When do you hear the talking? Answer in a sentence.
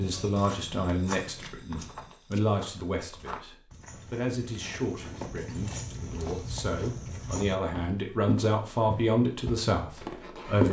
The talking can be heard from 0.0 to 10.6 s.